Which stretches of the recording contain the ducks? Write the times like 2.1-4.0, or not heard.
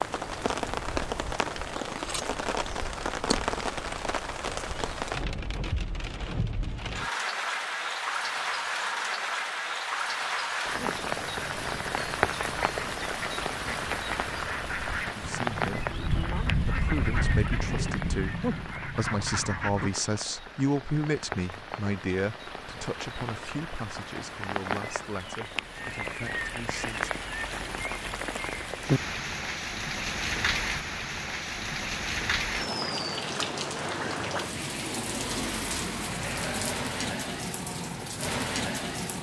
10.8-19.9.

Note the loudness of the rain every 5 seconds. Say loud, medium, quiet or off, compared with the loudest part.
loud, loud, loud, medium, medium, loud, loud, loud.